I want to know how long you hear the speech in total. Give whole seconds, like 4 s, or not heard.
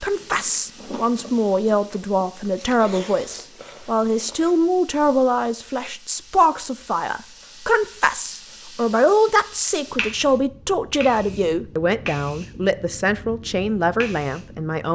15 s.